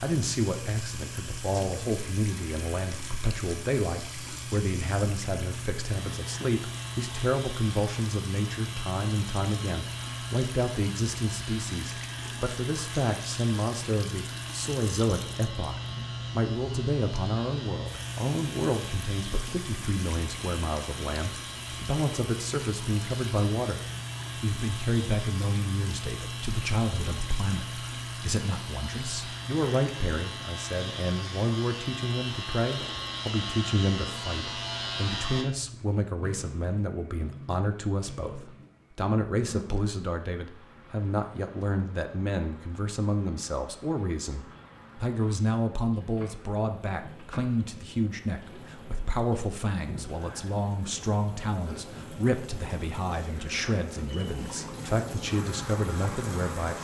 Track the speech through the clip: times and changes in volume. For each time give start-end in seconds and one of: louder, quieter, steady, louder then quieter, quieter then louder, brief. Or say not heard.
0.0-56.7 steady.